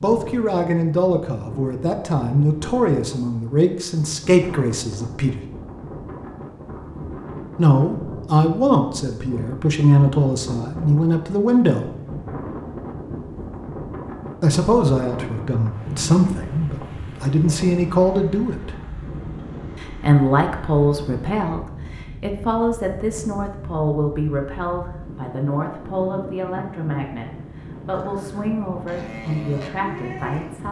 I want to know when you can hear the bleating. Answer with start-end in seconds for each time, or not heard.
27.9-30.6.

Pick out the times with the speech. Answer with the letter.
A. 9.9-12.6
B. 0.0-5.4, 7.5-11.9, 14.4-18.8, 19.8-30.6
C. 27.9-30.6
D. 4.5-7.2
B.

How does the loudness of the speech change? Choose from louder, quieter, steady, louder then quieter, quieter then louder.
quieter.